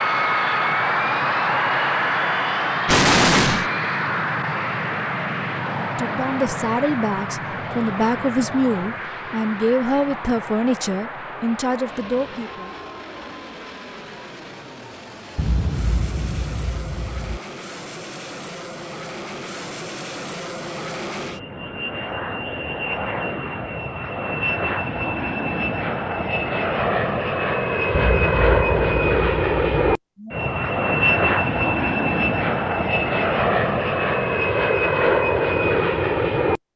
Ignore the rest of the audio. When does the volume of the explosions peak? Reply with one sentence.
The volume of the explosions peaks at 3 seconds.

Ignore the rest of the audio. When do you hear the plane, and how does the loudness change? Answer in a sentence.
The plane can be heard from 0.0 to 36.6 s, getting quieter then louder.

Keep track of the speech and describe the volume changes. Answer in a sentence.
The volume of the speech stays about the same.